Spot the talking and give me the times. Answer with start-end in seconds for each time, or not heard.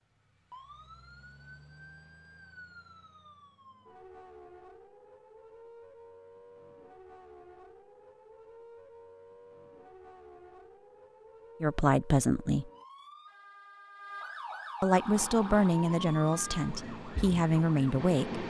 11.6-12.7, 14.8-18.4.